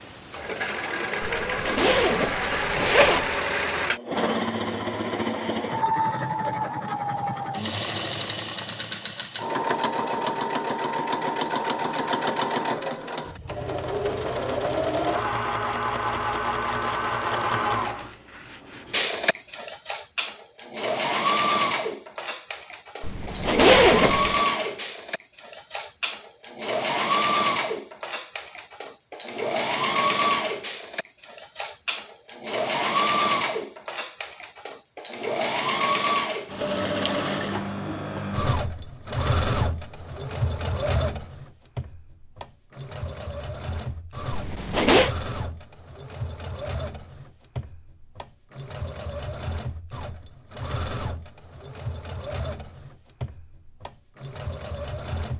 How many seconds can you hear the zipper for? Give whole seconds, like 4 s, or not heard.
4 s.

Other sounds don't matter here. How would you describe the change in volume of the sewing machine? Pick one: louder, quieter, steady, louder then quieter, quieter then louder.
quieter.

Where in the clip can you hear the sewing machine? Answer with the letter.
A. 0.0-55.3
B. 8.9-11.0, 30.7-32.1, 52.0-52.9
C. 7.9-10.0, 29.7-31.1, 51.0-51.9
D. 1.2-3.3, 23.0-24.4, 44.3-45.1
A.